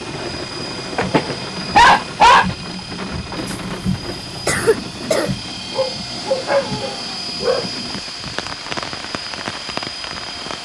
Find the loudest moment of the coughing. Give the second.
5 s.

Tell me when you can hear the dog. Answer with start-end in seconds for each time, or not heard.
0.6-2.5, 5.7-7.7.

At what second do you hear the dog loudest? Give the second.
2 s.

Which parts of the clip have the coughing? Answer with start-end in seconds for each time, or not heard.
3.4-5.3.